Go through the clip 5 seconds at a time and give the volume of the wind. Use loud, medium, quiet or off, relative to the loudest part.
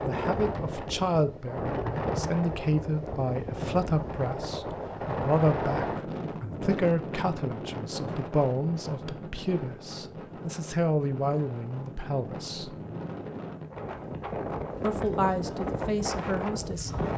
loud, loud, medium, loud.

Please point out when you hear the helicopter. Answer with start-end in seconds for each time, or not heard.
not heard.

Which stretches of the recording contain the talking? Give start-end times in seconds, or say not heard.
0.0-12.8, 14.8-16.9.